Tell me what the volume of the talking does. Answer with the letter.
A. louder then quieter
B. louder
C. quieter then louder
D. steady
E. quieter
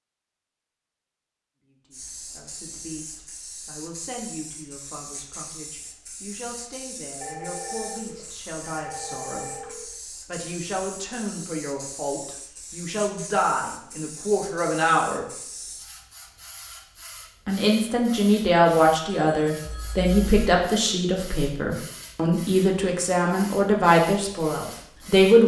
B.